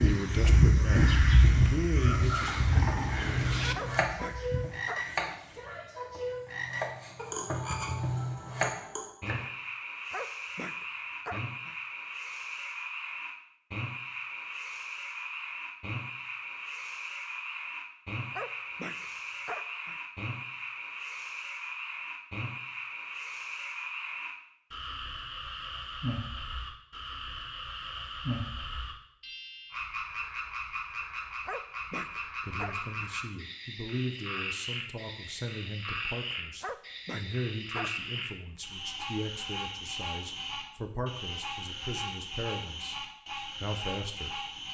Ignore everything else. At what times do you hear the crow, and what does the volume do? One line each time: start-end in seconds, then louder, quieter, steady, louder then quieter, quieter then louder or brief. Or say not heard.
0.0-5.7 quieter.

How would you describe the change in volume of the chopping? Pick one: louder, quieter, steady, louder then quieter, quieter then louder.
quieter then louder.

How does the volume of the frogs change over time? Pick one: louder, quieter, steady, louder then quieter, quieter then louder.
steady.